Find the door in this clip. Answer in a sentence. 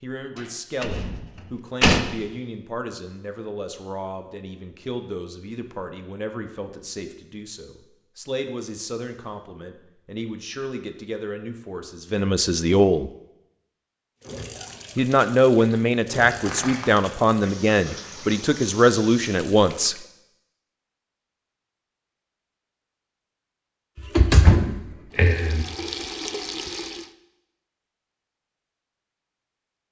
You can hear the door from 0.8 to 2.0 s, from 16.2 to 16.9 s and from 23.9 to 25.6 s.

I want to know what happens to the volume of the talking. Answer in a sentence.
The volume of the talking goes up.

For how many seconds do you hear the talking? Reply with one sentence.
You can hear the talking for 18 seconds altogether.